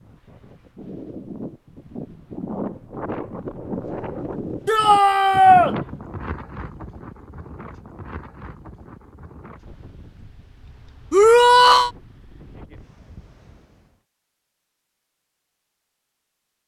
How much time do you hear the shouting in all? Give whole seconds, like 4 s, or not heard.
2 s.